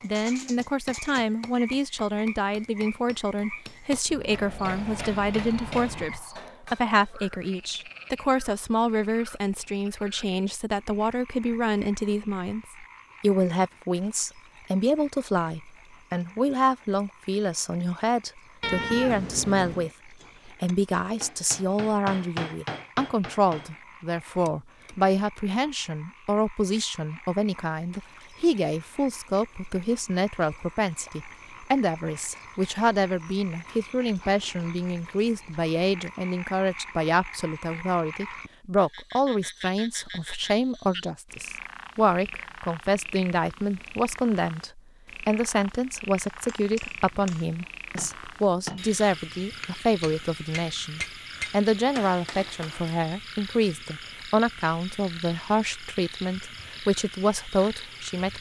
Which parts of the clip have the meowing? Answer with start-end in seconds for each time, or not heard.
18.6-19.9.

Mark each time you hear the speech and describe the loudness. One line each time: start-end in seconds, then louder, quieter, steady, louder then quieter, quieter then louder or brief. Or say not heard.
0.0-58.3 steady.